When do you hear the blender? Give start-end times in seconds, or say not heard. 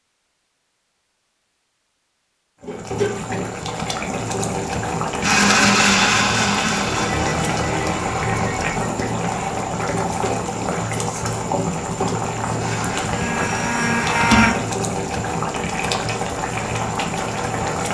5.2-9.6, 12.6-14.6.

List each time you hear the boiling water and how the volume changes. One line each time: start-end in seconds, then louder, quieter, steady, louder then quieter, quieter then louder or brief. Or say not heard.
2.6-17.8 steady.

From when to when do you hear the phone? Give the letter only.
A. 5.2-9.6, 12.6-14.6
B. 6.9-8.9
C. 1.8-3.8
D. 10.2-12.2
B.